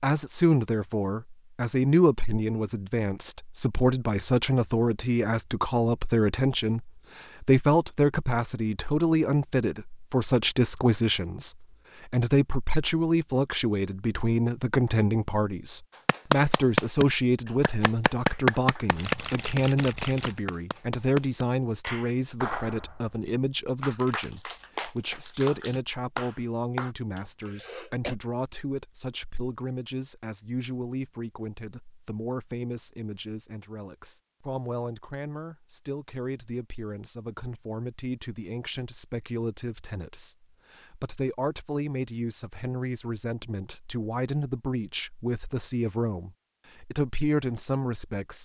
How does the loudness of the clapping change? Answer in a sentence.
The volume of the clapping goes down.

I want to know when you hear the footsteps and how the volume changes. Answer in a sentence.
You can't hear the footsteps here.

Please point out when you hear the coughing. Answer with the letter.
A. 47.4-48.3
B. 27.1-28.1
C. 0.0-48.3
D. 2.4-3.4
B.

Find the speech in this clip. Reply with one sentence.
The speech can be heard from 0.0 to 48.3 s.